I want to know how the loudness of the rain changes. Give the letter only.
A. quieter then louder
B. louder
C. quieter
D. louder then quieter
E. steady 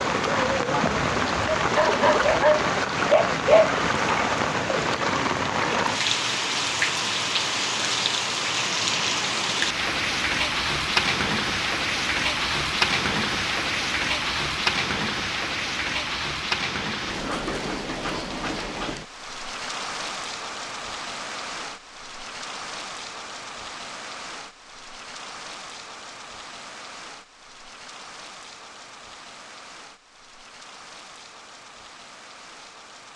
C.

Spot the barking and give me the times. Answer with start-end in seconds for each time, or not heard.
0.1-3.8.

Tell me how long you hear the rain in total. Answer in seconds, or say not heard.
33 s.